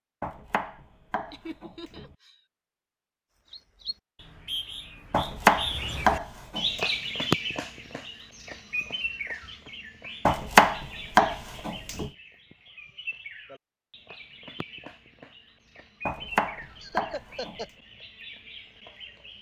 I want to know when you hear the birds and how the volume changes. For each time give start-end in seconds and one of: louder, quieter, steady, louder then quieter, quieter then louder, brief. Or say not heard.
3.5-19.3 quieter.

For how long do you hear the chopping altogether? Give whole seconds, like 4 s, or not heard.
7 s.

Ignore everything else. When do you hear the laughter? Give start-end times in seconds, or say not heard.
1.3-2.4, 16.8-17.7.